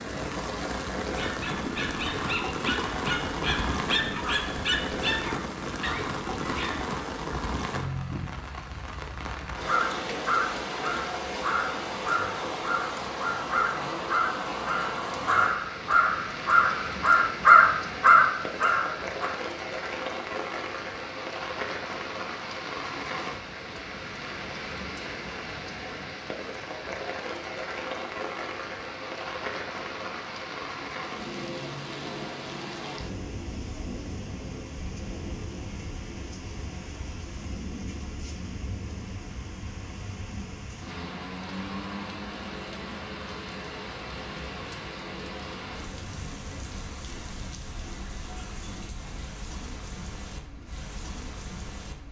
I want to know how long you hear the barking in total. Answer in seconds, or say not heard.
6 s.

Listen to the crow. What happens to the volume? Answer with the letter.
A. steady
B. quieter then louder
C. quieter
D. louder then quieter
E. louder
E.